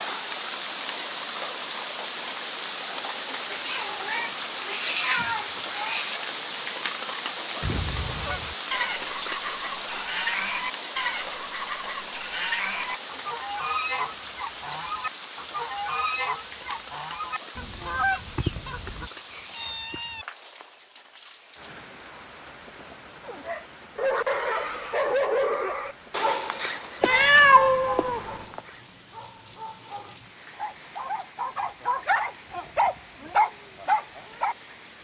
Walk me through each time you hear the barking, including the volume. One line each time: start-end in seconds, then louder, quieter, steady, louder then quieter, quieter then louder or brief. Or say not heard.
23.2-34.5 quieter then louder.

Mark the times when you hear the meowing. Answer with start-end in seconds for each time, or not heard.
3.5-6.2, 18.2-20.2, 27.0-28.6.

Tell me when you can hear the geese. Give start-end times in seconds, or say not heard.
7.6-19.1.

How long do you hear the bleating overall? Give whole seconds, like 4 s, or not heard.
not heard.